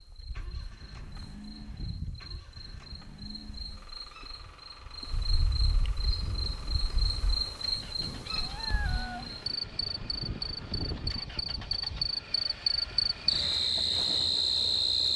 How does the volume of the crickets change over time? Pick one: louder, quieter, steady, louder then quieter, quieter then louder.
louder.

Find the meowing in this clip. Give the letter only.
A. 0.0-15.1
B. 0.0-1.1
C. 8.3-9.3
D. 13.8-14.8
C.